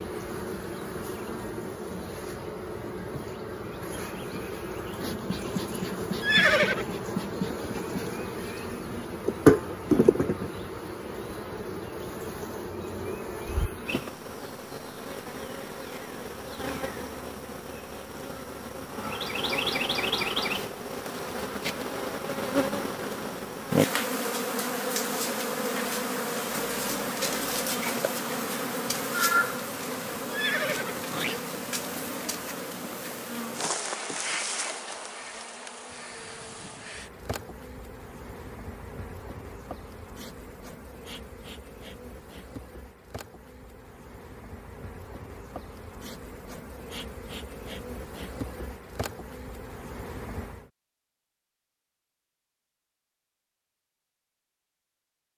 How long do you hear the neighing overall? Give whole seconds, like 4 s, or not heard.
2 s.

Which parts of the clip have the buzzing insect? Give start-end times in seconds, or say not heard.
0.0-50.7.